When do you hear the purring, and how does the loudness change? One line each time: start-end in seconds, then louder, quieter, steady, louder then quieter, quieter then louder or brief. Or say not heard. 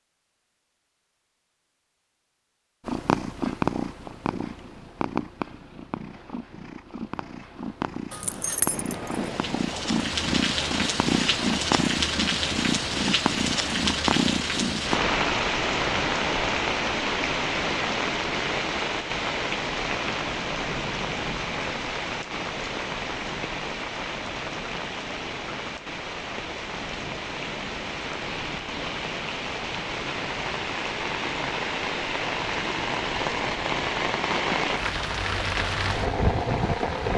2.9-15.0 quieter then louder.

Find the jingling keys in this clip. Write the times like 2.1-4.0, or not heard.
8.1-9.3.